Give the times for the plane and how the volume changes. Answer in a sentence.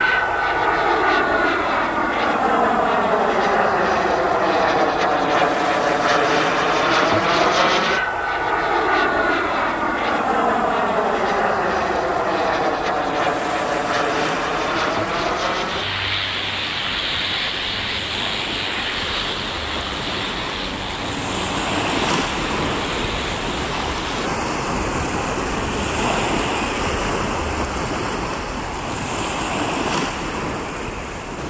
The plane can be heard from 0.0 to 24.3 s, getting quieter.